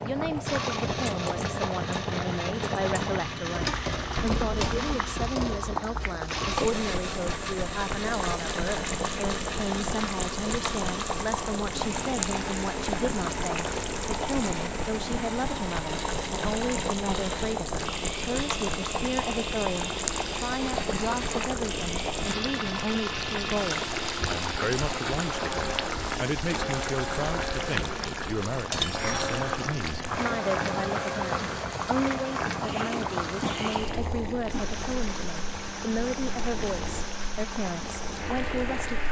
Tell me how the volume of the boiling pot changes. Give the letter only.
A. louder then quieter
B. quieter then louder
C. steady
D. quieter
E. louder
C.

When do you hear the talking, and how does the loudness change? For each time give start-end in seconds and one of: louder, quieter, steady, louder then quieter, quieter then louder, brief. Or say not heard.
0.0-39.0 steady.